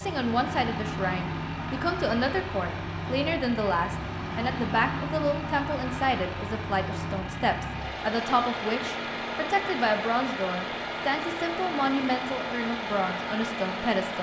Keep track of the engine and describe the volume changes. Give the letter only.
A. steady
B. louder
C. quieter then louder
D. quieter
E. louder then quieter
A.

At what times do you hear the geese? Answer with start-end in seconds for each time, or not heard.
not heard.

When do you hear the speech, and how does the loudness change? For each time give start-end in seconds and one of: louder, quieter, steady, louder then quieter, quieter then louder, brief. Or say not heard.
0.0-14.1 steady.